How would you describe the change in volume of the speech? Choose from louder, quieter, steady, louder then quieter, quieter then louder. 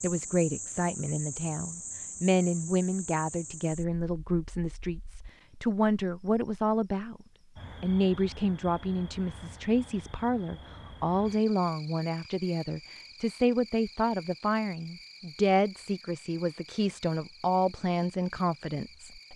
steady.